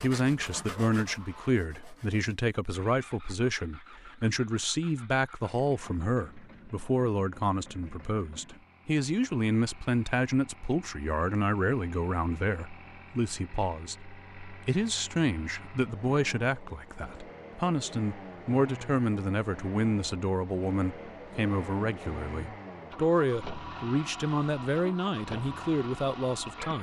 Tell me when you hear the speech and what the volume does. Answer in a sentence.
The speech can be heard from 0.0 to 26.7 s, at a steady volume.